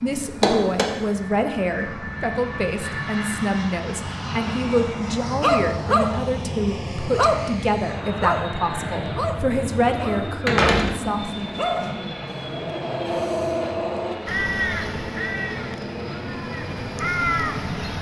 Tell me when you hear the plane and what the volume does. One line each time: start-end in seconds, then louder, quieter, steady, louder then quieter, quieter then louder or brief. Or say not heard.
0.0-17.9 steady.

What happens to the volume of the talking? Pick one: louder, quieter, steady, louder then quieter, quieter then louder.
steady.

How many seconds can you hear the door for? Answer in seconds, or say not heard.
2 s.